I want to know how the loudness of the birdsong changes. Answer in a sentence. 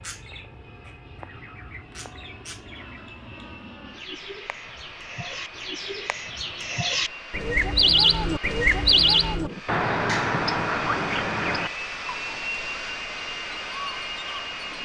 The volume of the birdsong goes up, then down.